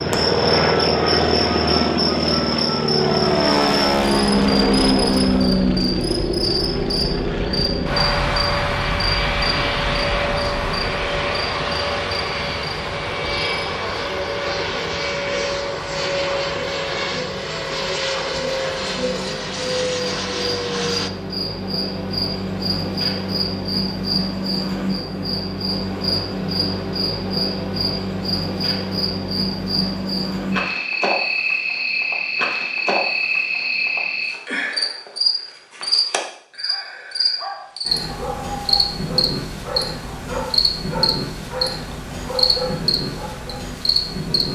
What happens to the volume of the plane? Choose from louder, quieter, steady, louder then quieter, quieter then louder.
quieter.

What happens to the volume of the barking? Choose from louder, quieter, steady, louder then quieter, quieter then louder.
steady.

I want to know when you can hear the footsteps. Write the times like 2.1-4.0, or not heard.
not heard.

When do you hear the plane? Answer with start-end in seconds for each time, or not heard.
0.0-21.1.